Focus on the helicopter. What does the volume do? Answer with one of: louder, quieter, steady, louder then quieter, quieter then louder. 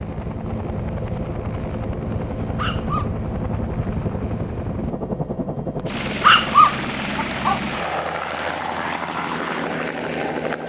steady.